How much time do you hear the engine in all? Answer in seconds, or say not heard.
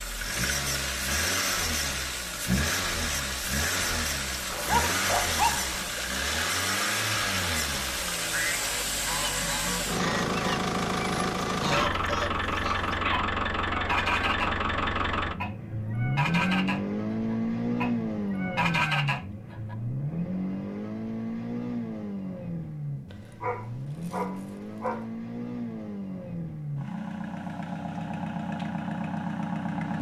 30 s.